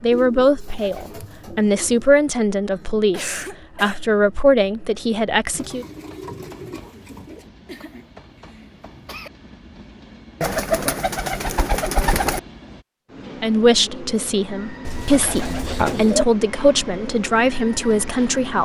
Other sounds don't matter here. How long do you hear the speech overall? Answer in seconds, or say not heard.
11 s.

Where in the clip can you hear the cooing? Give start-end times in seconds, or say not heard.
0.1-2.1, 5.5-7.5, 10.4-12.4, 14.8-16.2.